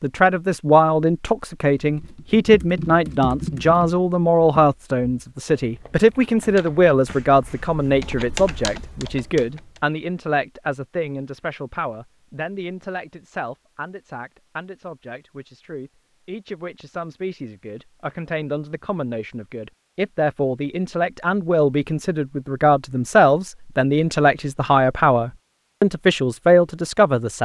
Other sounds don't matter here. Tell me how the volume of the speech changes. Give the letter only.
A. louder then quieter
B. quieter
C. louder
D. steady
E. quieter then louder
E.